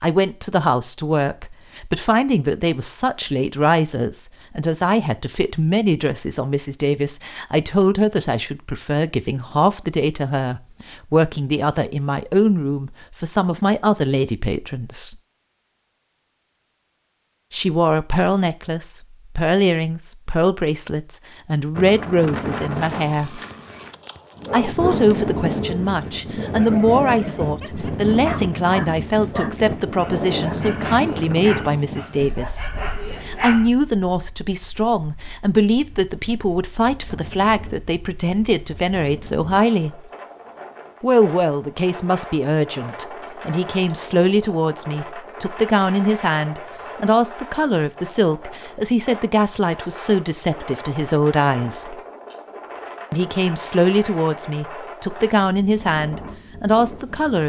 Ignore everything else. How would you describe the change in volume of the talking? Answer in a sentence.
The loudness of the talking stays about the same.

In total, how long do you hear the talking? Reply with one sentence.
The talking can be heard for 52 seconds in total.